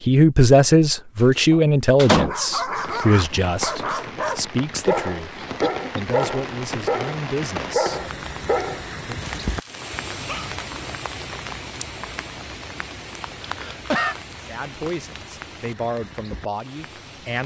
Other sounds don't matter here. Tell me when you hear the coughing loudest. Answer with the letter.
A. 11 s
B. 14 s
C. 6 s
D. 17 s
B.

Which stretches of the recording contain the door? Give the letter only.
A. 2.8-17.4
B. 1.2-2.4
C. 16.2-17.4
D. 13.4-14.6
B.